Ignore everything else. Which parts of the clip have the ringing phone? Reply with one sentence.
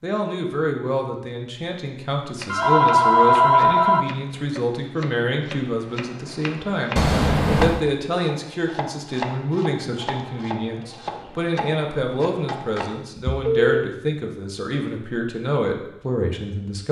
You can hear the ringing phone from 2.5 to 4.0 s, from 7.0 to 7.8 s and from 13.2 to 13.8 s.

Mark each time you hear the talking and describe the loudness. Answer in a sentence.
The talking can be heard from 0.0 to 16.8 s, at a steady volume.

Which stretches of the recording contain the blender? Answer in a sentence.
You can't hear the blender here.